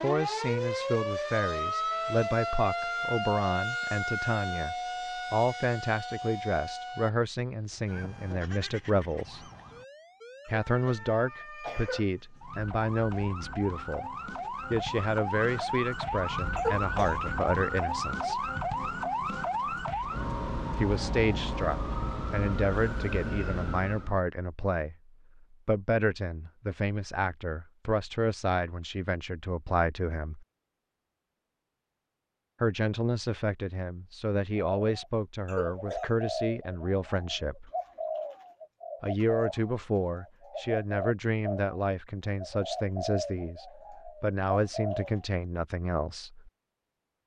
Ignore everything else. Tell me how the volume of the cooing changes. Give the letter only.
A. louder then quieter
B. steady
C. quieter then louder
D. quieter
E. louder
B.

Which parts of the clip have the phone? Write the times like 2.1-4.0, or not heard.
not heard.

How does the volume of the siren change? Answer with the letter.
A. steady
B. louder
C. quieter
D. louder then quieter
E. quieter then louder
E.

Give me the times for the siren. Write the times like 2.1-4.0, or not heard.
0.0-24.2.